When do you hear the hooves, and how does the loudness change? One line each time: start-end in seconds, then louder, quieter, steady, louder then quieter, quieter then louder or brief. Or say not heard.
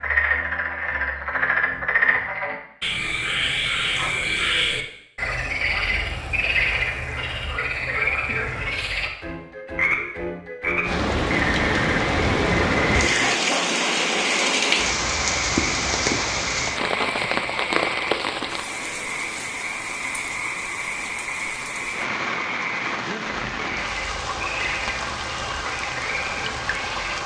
not heard.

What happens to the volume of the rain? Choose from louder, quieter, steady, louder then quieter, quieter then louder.
quieter.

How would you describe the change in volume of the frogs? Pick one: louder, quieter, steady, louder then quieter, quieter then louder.
quieter.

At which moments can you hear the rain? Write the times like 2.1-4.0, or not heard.
10.8-27.2.